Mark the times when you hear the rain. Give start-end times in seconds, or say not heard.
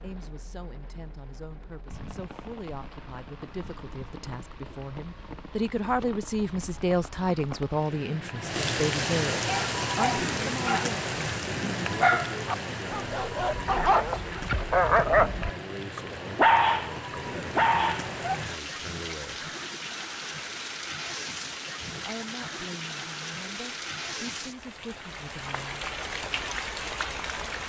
0.0-27.6.